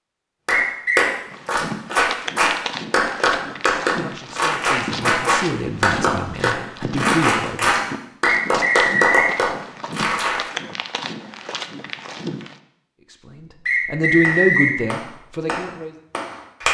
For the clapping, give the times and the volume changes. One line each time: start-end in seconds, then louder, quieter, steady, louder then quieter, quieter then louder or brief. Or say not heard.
0.5-10.5 steady
14.2-16.6 brief.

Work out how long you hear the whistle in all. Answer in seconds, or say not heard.
3 s.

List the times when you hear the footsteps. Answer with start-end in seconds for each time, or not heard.
1.2-12.6.